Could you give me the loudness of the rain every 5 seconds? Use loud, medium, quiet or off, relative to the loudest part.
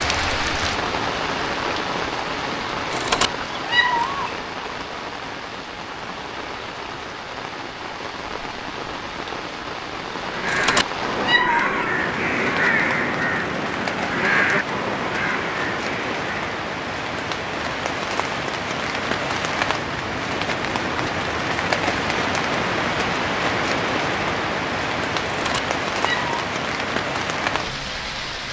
loud, medium, medium, loud, loud, loud.